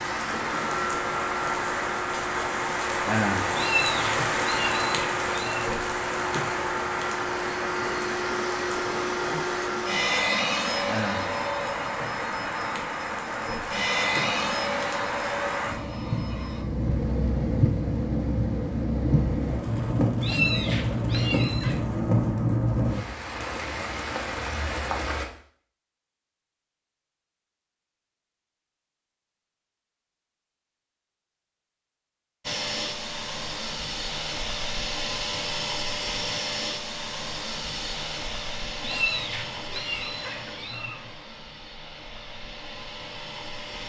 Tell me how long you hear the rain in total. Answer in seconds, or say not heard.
25 s.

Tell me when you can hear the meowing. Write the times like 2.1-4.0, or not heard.
3.5-5.7, 20.2-21.8, 38.8-41.1.